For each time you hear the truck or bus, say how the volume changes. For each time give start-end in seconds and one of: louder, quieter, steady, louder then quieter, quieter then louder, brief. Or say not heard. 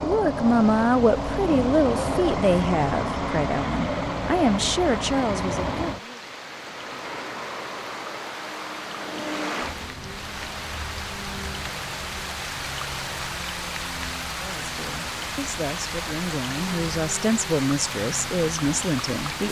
0.0-19.4 quieter.